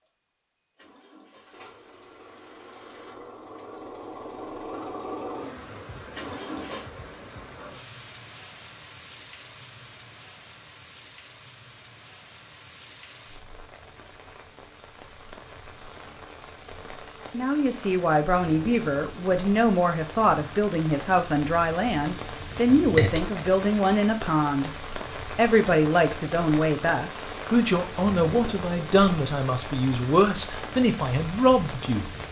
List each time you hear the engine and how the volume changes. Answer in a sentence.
You can hear the engine from 0.0 to 6.9 s, getting louder.